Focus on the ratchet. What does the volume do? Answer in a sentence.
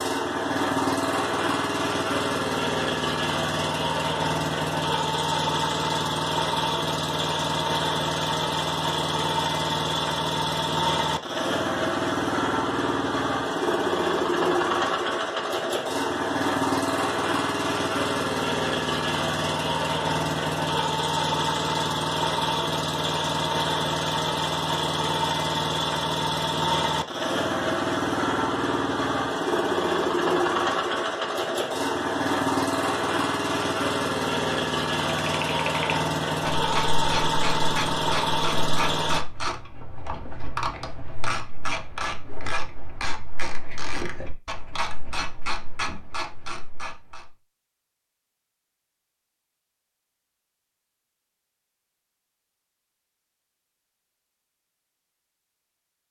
The volume of the ratchet stays about the same.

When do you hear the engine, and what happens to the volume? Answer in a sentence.
You can hear the engine from 0.0 to 39.2 s, at a steady volume.